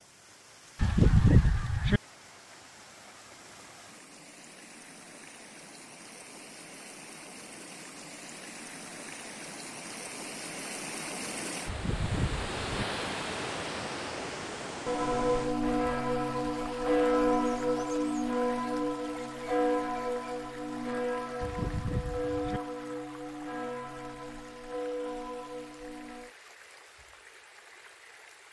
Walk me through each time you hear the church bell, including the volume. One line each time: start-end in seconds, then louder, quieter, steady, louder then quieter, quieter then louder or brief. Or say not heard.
14.8-26.4 quieter.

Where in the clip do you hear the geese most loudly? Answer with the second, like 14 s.
1 s.